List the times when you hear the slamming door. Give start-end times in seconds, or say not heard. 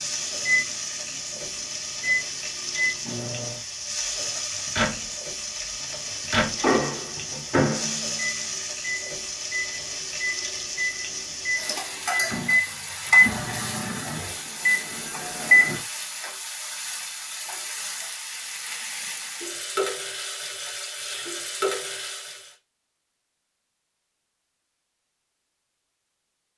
not heard.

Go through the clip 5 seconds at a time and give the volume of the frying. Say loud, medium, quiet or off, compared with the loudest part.
loud, loud, loud, loud, loud, off.